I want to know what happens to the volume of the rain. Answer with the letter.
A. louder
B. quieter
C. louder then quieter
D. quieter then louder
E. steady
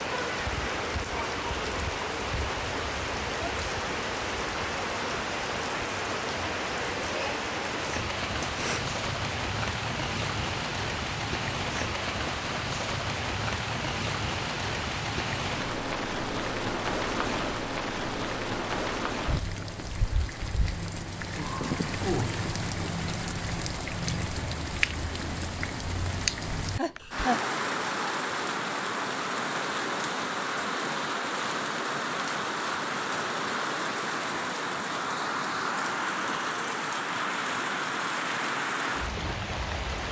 E.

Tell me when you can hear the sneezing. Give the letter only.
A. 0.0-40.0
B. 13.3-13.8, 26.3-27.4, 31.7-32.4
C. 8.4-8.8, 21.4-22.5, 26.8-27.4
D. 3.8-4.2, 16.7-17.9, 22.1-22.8
C.